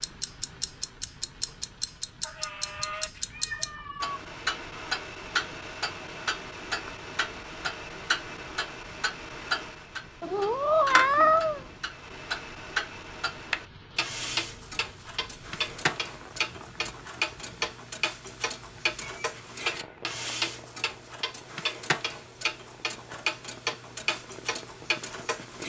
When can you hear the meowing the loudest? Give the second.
11 s.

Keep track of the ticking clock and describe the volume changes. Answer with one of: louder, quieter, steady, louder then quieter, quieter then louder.
steady.